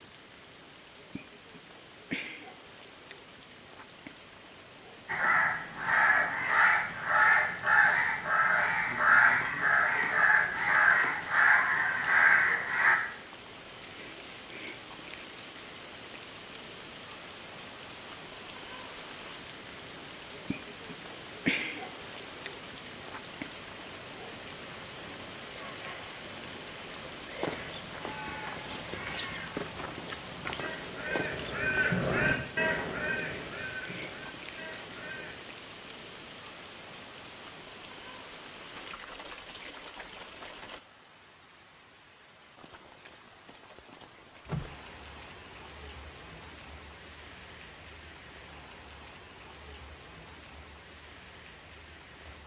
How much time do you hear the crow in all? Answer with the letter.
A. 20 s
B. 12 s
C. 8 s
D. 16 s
D.